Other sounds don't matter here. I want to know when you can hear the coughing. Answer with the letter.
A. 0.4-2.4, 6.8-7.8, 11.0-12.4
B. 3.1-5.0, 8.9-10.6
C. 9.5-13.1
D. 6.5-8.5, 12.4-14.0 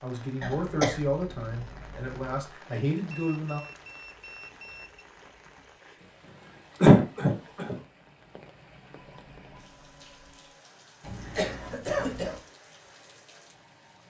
A.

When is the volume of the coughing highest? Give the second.
7 s.